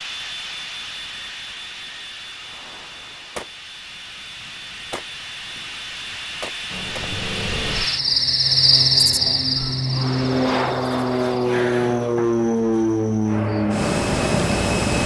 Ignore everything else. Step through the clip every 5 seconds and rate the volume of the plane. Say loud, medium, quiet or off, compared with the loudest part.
quiet, medium, loud.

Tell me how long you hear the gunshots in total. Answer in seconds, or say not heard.
3 s.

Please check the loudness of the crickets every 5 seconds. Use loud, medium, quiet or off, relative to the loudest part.
off, loud, quiet.